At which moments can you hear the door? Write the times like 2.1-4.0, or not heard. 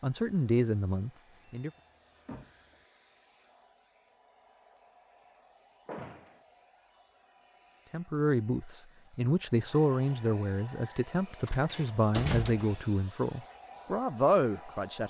1.4-2.8, 5.8-6.4, 11.4-12.8.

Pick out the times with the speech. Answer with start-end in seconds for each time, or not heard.
0.0-1.7, 7.9-15.0.